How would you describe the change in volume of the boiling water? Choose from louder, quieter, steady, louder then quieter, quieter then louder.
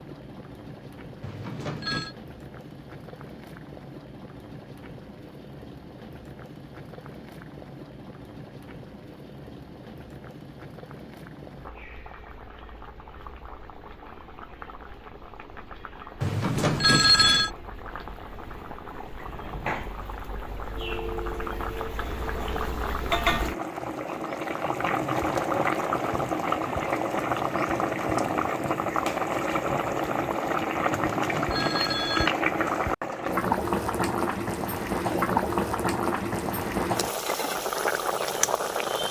louder.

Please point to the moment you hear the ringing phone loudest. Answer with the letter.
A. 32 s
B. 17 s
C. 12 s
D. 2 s
B.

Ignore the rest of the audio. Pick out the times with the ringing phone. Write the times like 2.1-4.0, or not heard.
1.2-2.1, 16.2-17.5, 30.9-32.3.